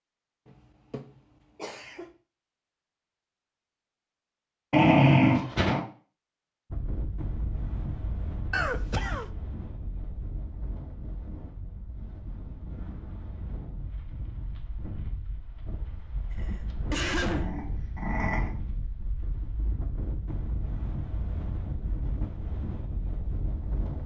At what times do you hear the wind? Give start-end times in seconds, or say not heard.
6.7-24.0.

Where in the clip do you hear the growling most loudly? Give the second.
5 s.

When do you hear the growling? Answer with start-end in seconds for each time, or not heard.
4.7-5.8, 17.2-18.5.